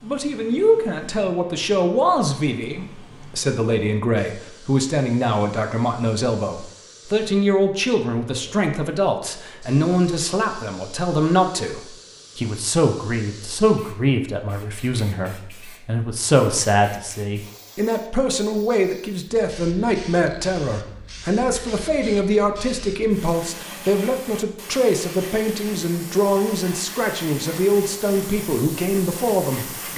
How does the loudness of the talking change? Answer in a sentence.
The volume of the talking stays about the same.